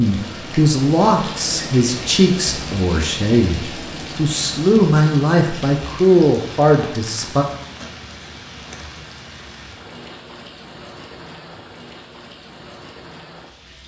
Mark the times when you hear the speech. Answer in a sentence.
The speech can be heard from 0.0 to 7.5 s.